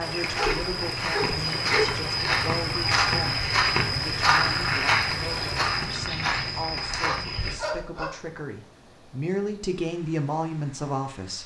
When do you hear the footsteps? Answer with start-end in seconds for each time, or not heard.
0.0-7.6.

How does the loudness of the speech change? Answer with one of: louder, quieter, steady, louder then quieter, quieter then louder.
louder.